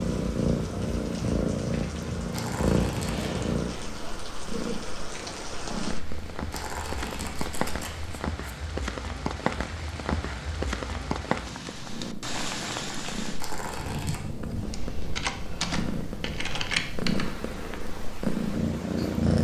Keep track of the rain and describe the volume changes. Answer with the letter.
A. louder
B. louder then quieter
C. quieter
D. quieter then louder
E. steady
B.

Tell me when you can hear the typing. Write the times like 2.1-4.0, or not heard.
14.6-17.3.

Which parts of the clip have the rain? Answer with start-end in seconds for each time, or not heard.
0.0-19.4.